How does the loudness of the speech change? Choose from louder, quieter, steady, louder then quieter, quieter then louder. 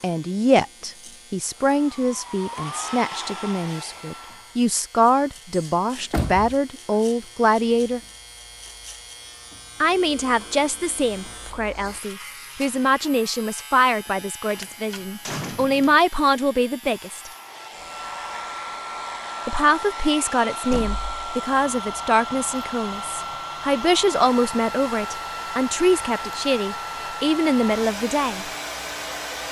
steady.